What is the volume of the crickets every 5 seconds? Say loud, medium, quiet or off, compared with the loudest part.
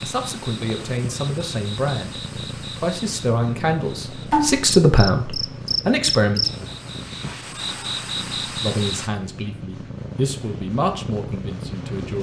loud, loud, off.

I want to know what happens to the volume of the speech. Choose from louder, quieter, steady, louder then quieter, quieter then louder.
louder then quieter.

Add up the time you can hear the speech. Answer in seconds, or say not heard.
10 s.